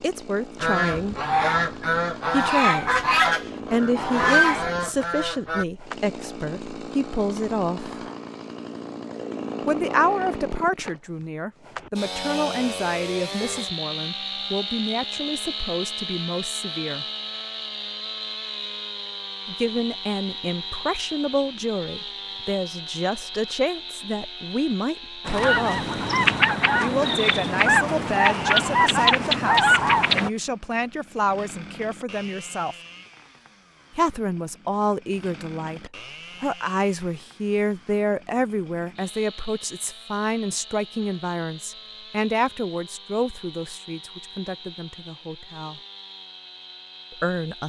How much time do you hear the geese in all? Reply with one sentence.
You can hear the geese for 10 seconds altogether.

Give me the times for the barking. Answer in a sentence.
The barking can't be heard in this clip.